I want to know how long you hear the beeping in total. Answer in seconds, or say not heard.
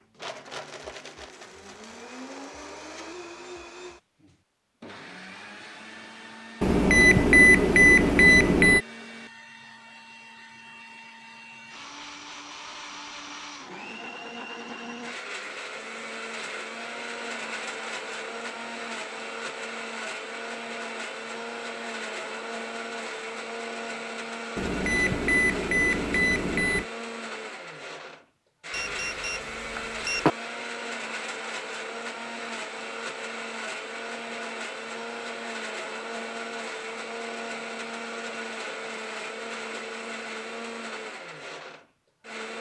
6 s.